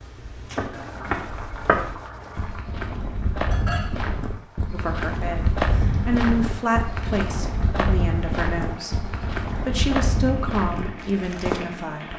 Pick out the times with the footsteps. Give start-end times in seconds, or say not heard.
0.3-11.7.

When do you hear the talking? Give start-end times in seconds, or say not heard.
4.7-12.1.